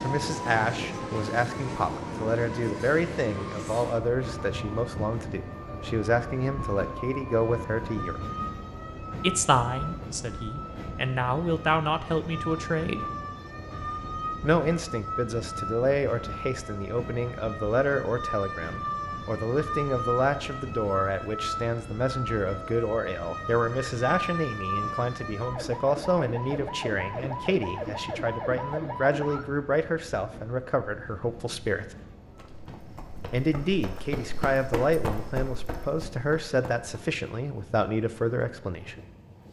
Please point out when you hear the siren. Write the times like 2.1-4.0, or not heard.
0.0-29.4.